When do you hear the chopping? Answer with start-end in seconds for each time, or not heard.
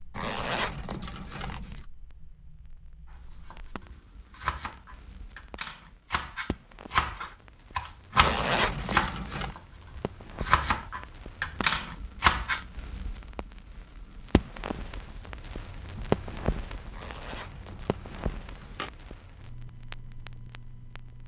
3.5-12.6.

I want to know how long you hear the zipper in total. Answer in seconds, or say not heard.
5 s.